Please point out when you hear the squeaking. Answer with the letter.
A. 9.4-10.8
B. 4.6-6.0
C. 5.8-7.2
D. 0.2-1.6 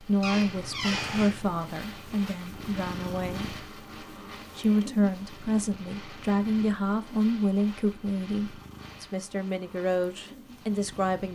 D.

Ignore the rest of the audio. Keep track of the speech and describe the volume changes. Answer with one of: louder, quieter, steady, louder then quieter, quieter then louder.
steady.